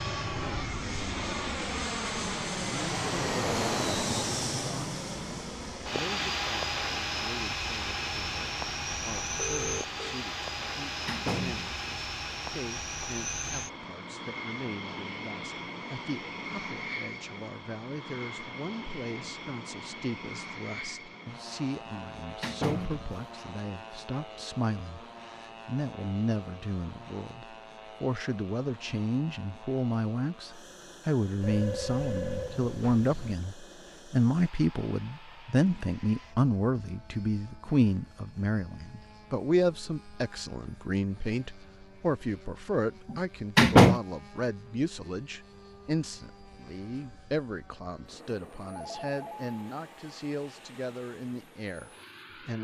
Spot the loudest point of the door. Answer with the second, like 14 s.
44 s.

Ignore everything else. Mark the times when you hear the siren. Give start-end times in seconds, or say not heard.
not heard.